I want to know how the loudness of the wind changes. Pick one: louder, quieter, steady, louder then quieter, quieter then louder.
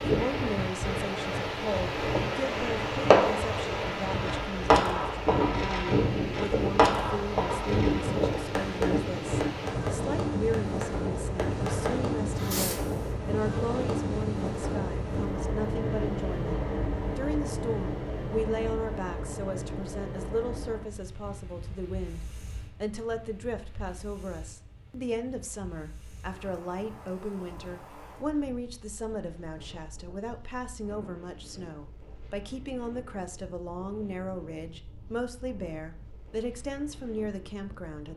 quieter.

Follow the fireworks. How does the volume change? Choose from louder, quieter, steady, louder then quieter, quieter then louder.
quieter.